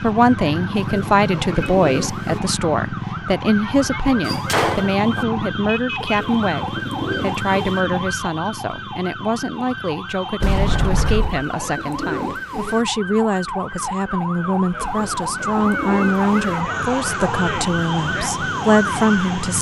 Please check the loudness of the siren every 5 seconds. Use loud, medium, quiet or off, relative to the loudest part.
loud, loud, medium, loud.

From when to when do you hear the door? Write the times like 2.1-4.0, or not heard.
4.2-5.2, 10.4-11.4.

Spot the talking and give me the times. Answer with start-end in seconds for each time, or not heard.
0.0-19.5.